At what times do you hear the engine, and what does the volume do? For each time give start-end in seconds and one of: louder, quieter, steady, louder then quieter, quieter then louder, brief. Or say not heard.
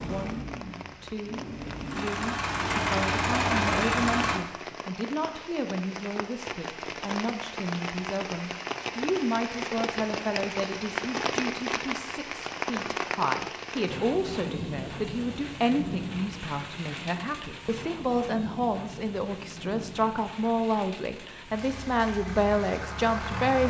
0.0-4.4 louder
21.4-23.6 brief.